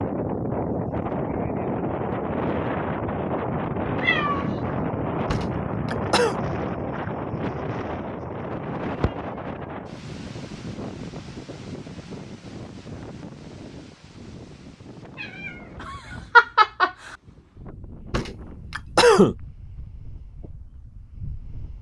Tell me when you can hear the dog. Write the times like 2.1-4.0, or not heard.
not heard.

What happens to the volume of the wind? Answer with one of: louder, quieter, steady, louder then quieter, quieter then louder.
quieter.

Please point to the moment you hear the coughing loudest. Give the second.
19 s.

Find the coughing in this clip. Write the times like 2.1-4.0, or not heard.
5.2-6.4, 18.1-19.4.